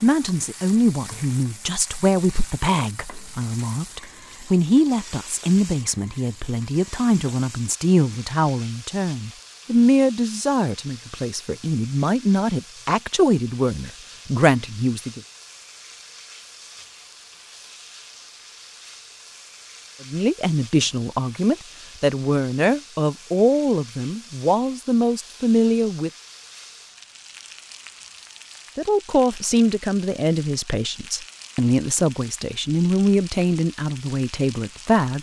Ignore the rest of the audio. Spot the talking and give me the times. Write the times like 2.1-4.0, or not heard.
0.0-15.2, 20.1-26.1, 28.8-35.1.